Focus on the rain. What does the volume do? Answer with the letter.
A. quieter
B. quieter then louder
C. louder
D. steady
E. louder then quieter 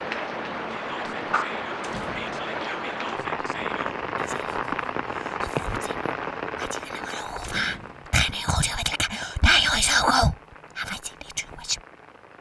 A.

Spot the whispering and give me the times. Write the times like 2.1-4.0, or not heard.
0.7-11.8.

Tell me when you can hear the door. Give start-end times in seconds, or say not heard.
1.8-2.4, 7.4-8.2.